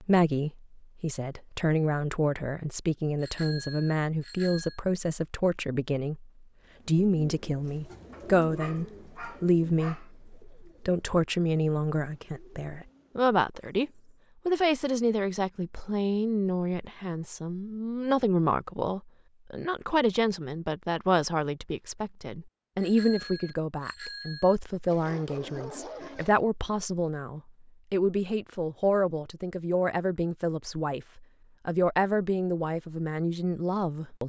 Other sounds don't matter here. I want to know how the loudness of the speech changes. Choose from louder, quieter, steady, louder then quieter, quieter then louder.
steady.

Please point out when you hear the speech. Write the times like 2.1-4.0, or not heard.
0.0-34.2.